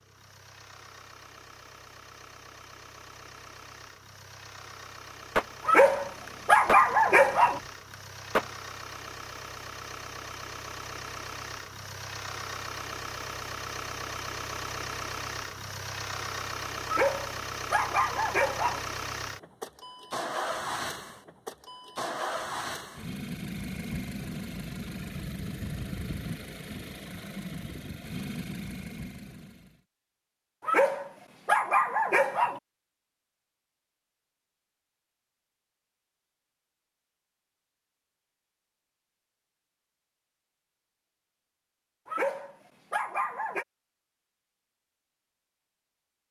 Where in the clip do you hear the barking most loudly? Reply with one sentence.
The volume of the barking peaks at 7 seconds.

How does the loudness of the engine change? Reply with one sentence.
The volume of the engine goes up.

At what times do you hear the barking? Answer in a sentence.
The barking can be heard from 5.7 to 7.6 s, from 16.9 to 18.9 s, from 30.6 to 32.6 s and from 42.0 to 43.6 s.